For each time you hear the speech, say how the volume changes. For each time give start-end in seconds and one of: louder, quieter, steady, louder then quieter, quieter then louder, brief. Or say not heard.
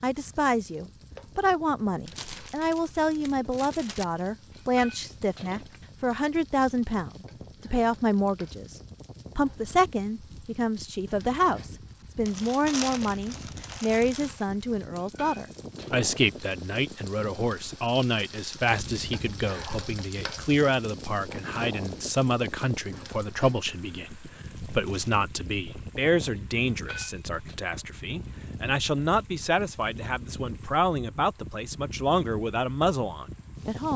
0.0-33.9 steady.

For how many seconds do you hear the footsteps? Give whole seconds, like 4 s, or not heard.
not heard.